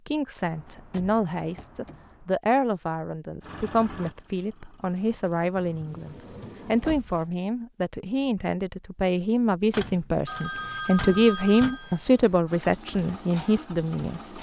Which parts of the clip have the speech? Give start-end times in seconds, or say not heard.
0.1-14.3.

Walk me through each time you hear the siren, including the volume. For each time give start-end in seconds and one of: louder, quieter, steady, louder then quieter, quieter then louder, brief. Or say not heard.
not heard.